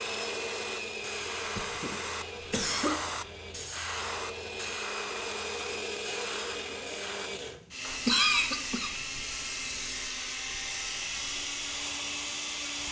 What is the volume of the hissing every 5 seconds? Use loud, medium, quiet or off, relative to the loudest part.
loud, medium, medium.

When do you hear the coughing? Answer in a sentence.
You can hear the coughing from 1.6 to 3.0 s and from 8.1 to 8.9 s.